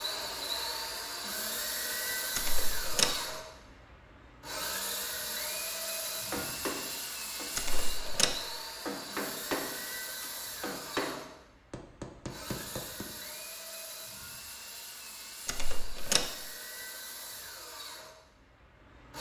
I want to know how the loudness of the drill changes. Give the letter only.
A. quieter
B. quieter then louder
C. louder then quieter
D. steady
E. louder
A.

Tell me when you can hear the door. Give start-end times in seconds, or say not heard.
2.4-3.2, 7.5-8.4, 15.4-16.4.